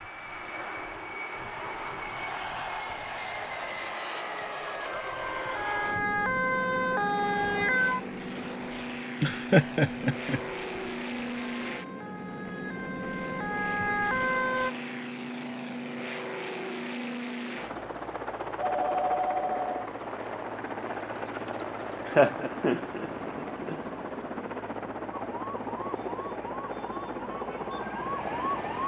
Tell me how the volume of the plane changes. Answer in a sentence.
The volume of the plane stays about the same.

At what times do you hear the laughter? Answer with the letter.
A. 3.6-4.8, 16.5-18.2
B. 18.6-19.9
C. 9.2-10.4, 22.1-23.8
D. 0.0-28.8
C.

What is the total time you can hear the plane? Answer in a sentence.
You can hear the plane for 29 seconds altogether.